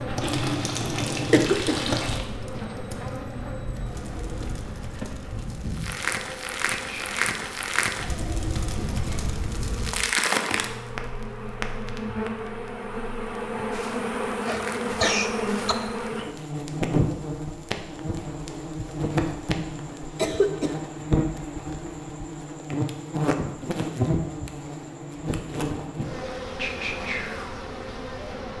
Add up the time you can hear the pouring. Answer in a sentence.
You can hear the pouring for 2 seconds altogether.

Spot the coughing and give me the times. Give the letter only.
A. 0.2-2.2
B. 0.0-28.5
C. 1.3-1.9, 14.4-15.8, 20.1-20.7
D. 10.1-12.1
C.